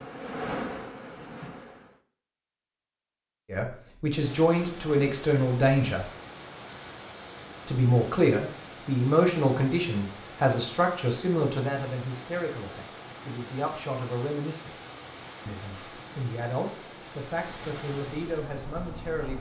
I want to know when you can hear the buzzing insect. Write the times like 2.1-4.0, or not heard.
0.0-2.0, 17.3-19.3.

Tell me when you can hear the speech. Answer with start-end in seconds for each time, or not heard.
3.5-6.0, 7.7-14.8, 15.4-19.3.